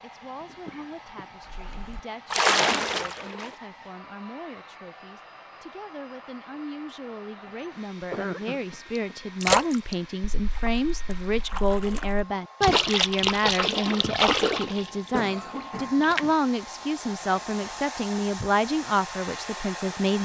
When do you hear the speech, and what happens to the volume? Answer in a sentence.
The speech can be heard from 0.0 to 20.2 s, getting louder.